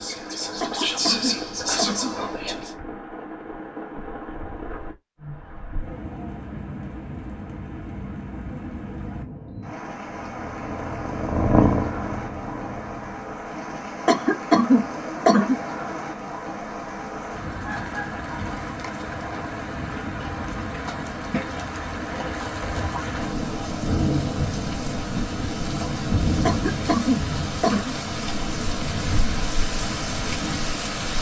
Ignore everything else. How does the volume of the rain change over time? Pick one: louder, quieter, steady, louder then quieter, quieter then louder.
louder.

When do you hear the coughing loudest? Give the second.
15 s.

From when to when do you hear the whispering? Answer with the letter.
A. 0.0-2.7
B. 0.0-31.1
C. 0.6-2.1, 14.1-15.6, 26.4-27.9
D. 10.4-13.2
A.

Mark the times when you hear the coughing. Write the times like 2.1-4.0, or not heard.
0.6-2.1, 14.1-15.6, 26.4-27.9.